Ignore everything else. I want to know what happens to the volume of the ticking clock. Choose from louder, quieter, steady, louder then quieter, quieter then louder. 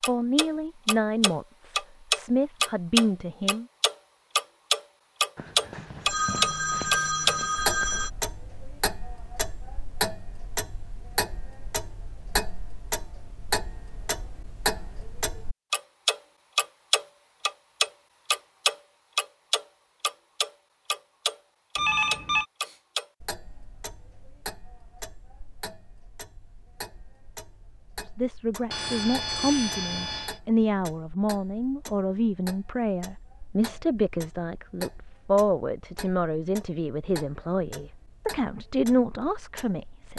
quieter.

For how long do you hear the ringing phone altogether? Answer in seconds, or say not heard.
5 s.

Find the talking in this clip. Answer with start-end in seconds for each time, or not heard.
0.1-3.6, 28.1-40.1.